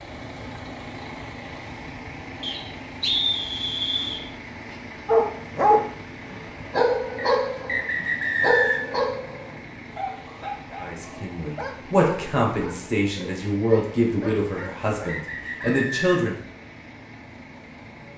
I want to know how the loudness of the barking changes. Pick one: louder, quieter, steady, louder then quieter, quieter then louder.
quieter.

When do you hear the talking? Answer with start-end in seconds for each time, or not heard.
10.8-16.4.